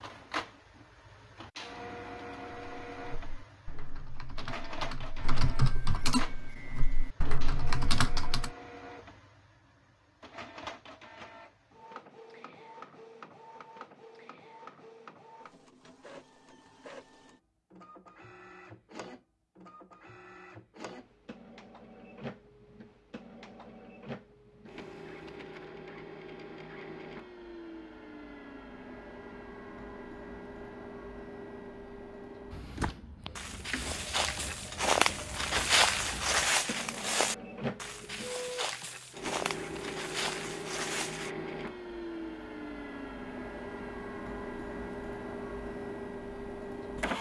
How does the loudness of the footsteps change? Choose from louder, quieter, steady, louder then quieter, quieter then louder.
louder then quieter.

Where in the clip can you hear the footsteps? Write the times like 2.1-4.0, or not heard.
32.8-41.3.